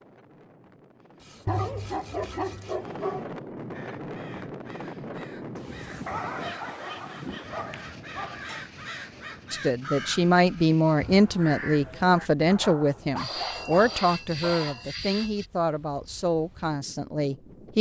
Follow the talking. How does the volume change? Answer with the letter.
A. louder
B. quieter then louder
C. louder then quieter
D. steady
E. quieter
E.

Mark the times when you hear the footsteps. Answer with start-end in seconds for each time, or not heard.
not heard.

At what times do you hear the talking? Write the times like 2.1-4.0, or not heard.
9.5-17.7.